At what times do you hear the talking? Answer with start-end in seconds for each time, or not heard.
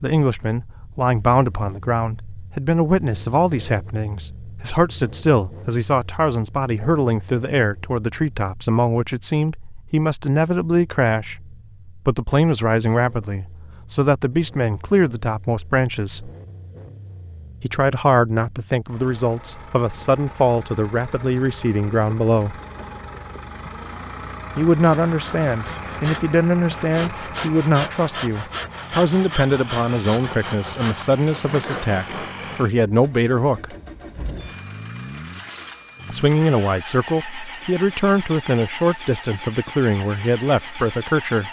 0.0-16.3, 17.6-22.6, 24.6-33.8, 36.1-41.4.